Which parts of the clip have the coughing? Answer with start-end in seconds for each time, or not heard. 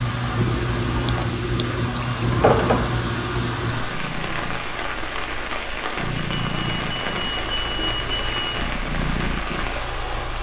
2.4-3.1.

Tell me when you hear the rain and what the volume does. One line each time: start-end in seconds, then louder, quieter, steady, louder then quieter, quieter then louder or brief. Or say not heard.
0.0-10.3 steady.